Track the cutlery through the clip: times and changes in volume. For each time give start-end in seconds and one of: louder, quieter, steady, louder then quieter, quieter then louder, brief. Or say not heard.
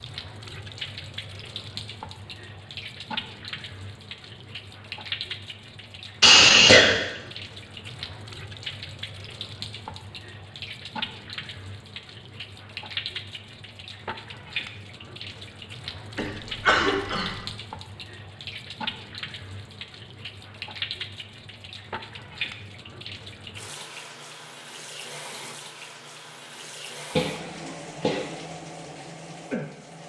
not heard.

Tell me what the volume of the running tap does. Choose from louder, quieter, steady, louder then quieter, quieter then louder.
steady.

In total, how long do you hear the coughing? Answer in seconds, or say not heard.
3 s.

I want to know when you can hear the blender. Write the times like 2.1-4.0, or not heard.
not heard.